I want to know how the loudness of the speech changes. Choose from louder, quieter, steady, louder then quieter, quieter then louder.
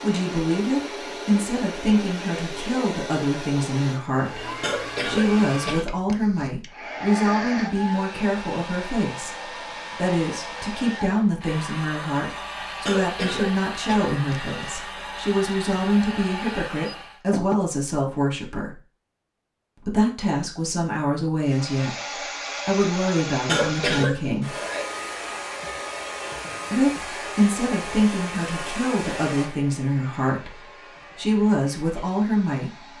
steady.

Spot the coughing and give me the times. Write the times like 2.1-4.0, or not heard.
4.6-6.7, 12.8-14.8, 23.4-24.4.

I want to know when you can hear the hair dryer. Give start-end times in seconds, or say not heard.
0.0-17.2, 21.4-32.9.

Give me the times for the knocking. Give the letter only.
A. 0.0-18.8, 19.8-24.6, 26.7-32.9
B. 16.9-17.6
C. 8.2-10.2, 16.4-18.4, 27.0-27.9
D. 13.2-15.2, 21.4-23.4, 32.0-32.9
B.